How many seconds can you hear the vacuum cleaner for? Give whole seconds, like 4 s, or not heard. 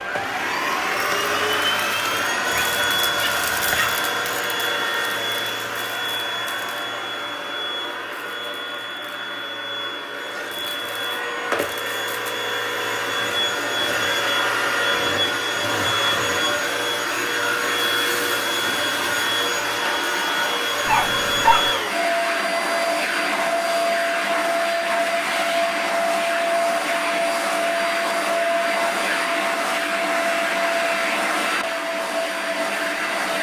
33 s.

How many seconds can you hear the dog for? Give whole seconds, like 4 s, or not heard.
2 s.